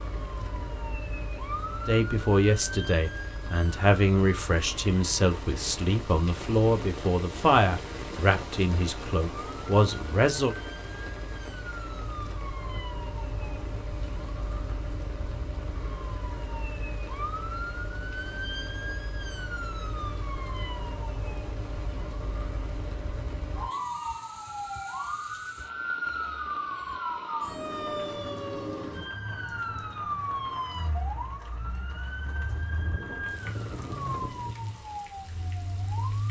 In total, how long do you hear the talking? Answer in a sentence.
The talking can be heard for 9 seconds in total.